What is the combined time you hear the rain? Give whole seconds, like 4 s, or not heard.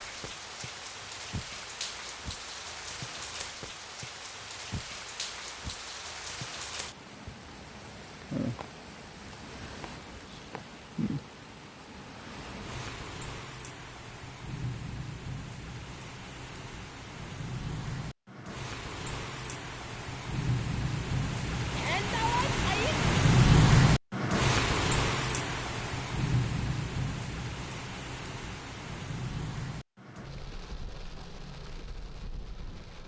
33 s.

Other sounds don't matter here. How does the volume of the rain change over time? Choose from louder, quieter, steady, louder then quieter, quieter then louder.
louder then quieter.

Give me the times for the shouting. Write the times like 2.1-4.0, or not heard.
21.8-23.0.